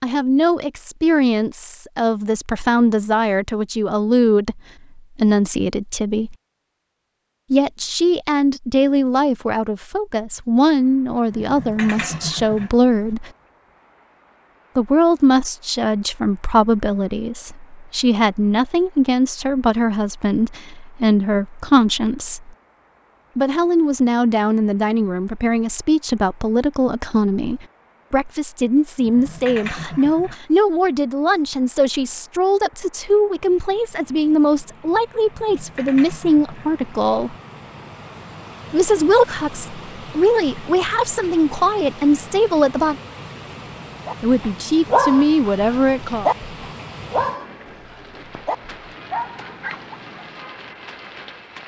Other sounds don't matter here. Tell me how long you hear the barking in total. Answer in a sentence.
You can hear the barking for 6 seconds altogether.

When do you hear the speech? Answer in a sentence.
The speech can be heard from 0.0 to 6.3 s, from 7.5 to 13.3 s, from 14.8 to 22.5 s, from 23.4 to 37.4 s, from 38.7 to 43.0 s and from 44.2 to 46.3 s.